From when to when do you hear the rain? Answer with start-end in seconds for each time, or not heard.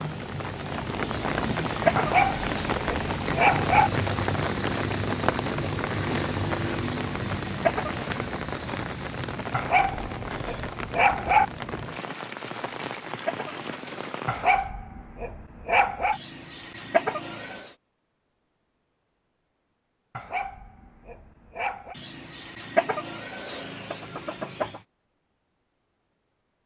0.0-14.7.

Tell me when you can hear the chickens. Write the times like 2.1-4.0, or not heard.
1.1-2.8, 6.8-8.3, 12.4-14.1, 16.1-17.7, 21.9-24.8.